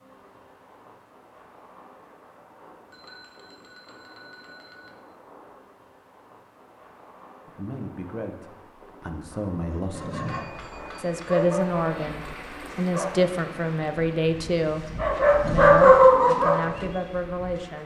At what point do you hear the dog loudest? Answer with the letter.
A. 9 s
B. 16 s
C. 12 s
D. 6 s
B.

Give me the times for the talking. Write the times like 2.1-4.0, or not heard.
7.5-10.3, 10.9-17.8.